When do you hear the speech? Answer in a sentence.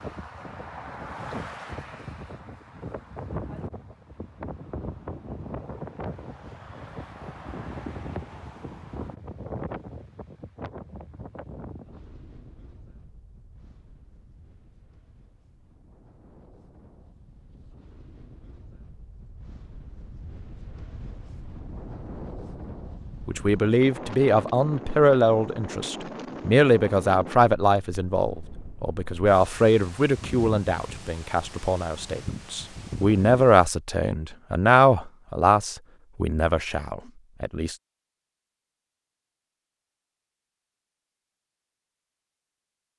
The speech can be heard from 23.2 to 37.8 s.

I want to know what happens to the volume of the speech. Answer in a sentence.
The loudness of the speech stays about the same.